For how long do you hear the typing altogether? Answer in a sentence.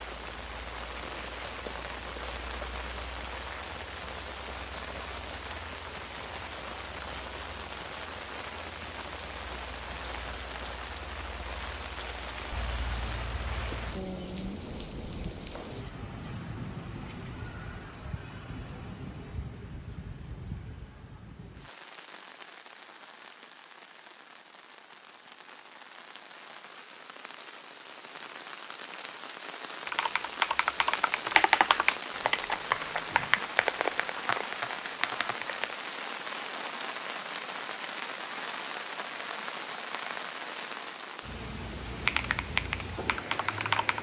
You can hear the typing for 8 seconds altogether.